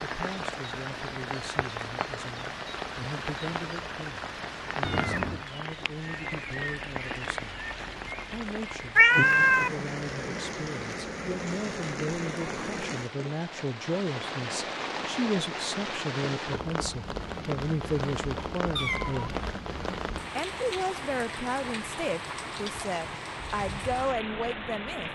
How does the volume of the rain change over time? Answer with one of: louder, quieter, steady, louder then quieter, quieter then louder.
steady.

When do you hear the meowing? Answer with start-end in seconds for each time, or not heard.
4.8-5.5, 8.9-9.7, 18.8-19.5.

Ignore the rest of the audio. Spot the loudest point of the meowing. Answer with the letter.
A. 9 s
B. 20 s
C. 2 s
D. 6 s
A.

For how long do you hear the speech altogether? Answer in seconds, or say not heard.
23 s.